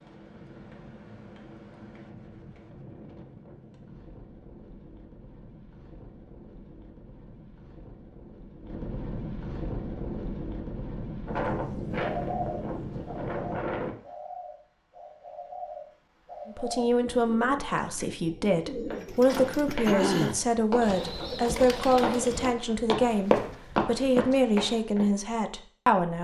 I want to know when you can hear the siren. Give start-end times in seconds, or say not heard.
not heard.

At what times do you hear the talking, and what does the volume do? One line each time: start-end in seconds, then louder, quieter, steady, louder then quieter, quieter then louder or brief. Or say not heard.
16.4-26.1 steady.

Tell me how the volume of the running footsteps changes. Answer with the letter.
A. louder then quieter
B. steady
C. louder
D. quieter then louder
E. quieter
C.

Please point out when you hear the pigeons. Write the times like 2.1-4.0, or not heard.
11.9-22.5.